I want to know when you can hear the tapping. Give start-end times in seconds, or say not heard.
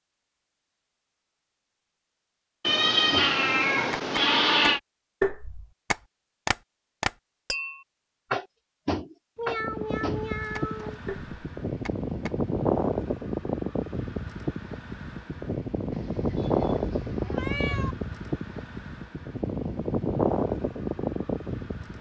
3.1-12.3.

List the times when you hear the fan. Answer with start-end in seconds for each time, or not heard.
9.4-21.9.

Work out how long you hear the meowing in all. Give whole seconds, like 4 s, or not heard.
6 s.